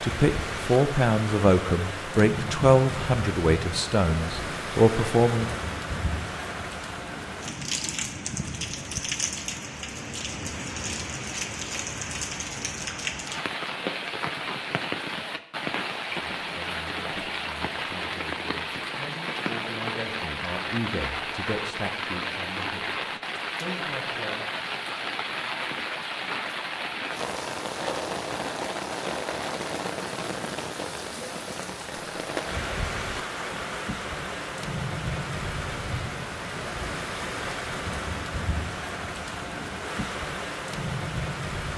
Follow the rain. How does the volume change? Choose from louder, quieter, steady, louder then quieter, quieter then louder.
steady.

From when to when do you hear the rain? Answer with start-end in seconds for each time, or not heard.
0.0-41.7.